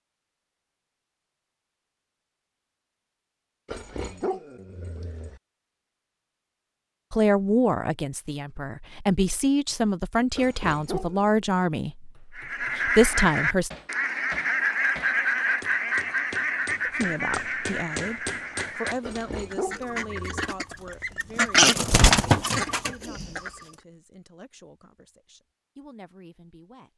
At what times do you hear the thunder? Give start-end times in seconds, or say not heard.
not heard.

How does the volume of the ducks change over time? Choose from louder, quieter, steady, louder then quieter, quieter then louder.
quieter then louder.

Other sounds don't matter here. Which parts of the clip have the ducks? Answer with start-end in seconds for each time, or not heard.
12.3-23.5.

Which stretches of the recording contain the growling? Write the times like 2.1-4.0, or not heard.
3.6-5.4, 10.3-11.3, 19.0-20.5.